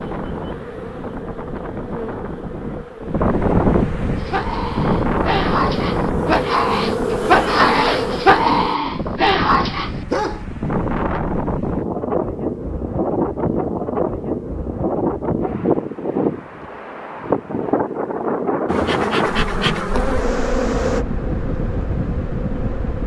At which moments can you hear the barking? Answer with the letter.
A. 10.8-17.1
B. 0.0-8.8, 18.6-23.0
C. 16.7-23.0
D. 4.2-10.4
D.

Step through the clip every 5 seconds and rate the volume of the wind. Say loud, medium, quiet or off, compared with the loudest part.
loud, loud, loud, loud, medium.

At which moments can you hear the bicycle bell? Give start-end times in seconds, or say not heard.
not heard.